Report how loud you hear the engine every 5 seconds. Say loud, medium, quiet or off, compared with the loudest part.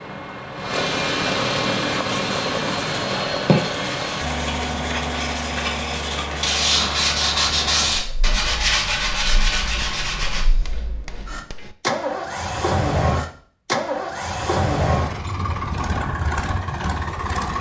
loud, medium, loud, loud.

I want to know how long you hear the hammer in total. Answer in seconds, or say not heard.
2 s.